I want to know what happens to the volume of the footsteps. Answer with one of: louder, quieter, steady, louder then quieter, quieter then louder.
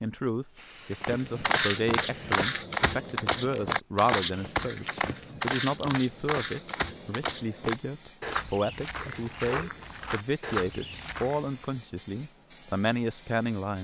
quieter.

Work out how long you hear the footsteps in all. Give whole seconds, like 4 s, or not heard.
11 s.